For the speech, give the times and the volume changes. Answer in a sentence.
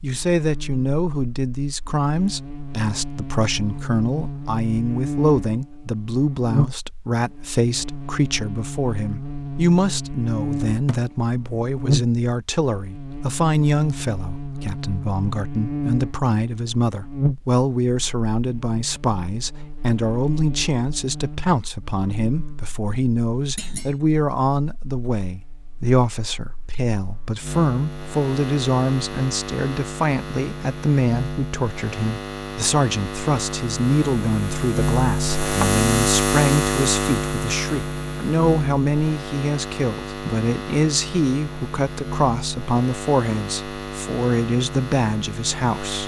You can hear the speech from 0.0 to 46.0 s, at a steady volume.